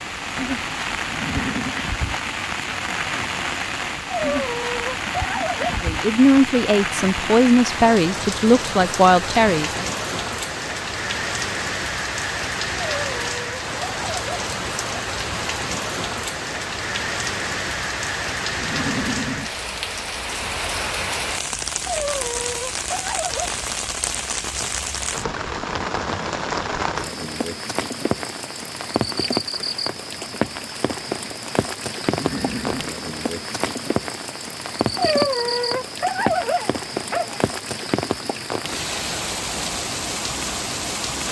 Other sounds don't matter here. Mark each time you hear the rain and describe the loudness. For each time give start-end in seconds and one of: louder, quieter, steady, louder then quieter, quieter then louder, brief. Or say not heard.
0.0-41.2 steady.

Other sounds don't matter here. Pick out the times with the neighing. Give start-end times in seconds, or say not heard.
1.1-1.8, 18.6-19.5, 32.0-32.9.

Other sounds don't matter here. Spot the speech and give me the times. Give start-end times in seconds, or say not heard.
5.8-9.8.